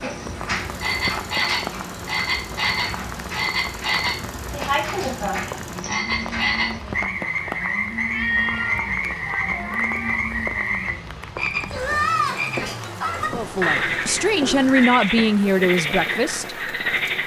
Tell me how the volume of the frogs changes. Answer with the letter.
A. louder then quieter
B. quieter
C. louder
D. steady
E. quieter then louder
D.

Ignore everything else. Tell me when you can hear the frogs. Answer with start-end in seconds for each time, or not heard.
0.0-17.2.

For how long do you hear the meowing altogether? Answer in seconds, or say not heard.
2 s.